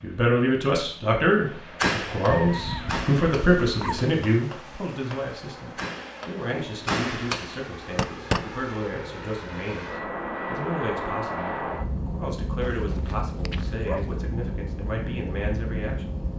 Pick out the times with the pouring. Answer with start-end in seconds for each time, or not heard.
not heard.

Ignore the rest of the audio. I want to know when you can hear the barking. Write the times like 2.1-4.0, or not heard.
2.3-4.1, 12.6-14.2.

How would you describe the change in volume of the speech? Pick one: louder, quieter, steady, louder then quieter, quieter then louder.
quieter.